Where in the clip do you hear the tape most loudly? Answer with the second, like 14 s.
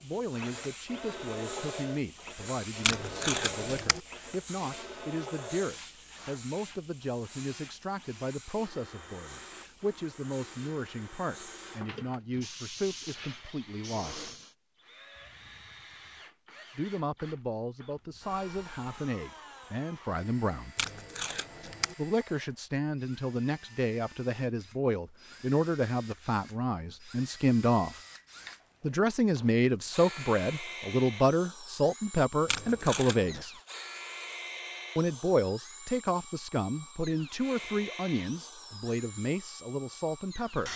3 s.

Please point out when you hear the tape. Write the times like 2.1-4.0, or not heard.
2.8-4.0, 20.8-21.9, 32.5-33.5.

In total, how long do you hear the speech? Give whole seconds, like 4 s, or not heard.
35 s.